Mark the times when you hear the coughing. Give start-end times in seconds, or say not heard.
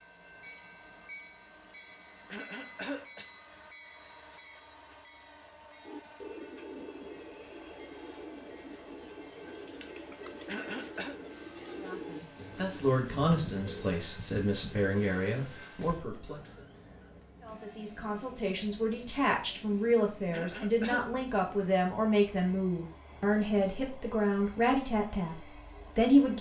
2.3-3.2, 10.4-11.2, 20.3-21.1.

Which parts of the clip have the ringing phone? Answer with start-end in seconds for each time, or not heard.
not heard.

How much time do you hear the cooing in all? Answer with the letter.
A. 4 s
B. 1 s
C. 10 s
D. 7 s
C.